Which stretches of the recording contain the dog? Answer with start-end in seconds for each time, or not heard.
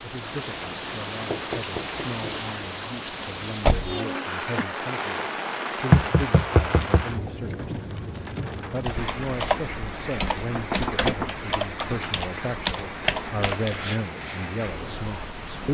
not heard.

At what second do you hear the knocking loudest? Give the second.
6 s.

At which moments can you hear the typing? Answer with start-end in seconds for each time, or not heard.
8.8-14.0.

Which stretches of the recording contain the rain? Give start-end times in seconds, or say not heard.
0.0-15.6.